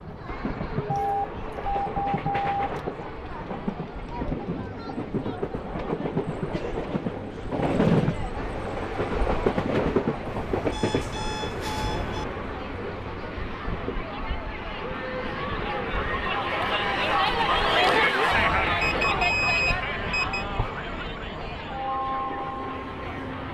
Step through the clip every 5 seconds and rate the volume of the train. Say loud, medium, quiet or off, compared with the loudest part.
medium, loud, medium, medium, medium.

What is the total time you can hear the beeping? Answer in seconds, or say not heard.
5 s.